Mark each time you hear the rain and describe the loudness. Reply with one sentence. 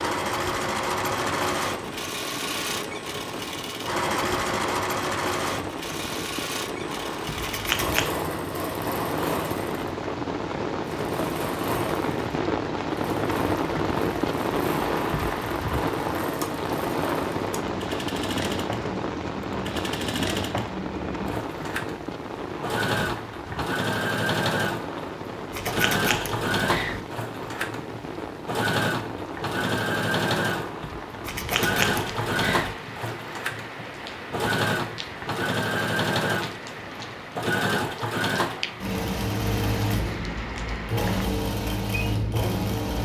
The rain can be heard from 0.0 to 42.8 s, getting louder then quieter.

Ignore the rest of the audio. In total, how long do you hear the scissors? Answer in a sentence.
The scissors can be heard for 4 seconds in total.